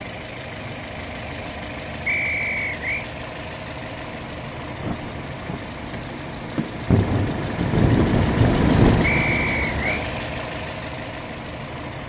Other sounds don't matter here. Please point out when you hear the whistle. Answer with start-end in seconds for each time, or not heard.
2.0-3.0, 9.0-10.1.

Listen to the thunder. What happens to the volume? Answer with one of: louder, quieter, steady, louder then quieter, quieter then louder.
louder.